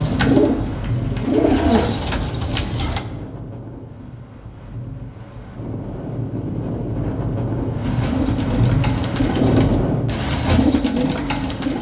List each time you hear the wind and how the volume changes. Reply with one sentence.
The wind can be heard from 0.0 to 10.2 s, getting quieter then louder.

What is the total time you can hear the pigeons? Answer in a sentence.
The pigeons can be heard for 7 seconds in total.